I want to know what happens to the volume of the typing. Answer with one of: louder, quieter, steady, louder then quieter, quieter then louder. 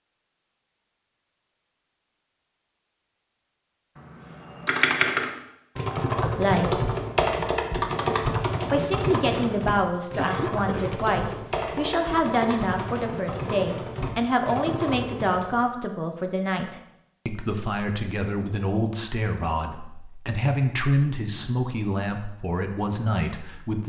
quieter.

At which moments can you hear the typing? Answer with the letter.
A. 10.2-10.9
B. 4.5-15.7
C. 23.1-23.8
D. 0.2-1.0
B.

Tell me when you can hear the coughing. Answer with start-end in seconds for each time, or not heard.
10.2-10.9.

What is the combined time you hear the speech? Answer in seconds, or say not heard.
16 s.